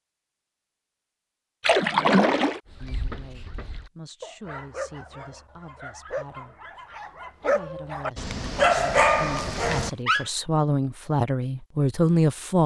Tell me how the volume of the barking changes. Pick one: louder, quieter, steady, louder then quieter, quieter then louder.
louder.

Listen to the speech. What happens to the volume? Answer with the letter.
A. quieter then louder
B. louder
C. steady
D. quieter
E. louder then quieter
B.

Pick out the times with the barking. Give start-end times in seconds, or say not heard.
2.8-10.2.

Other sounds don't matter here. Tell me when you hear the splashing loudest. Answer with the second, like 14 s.
2 s.